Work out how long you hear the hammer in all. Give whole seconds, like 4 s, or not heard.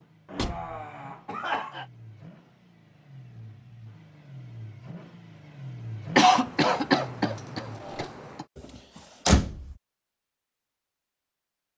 not heard.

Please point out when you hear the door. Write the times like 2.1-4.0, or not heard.
0.3-0.8, 9.2-9.8.